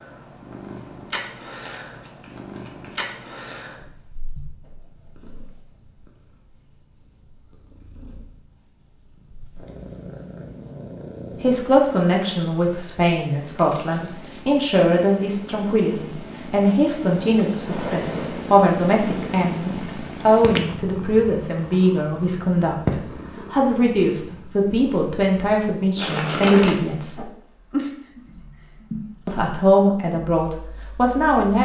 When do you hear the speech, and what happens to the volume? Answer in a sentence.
You can hear the speech from 11.4 to 27.2 s, at a steady volume; and briefly from 29.2 to 31.6 s.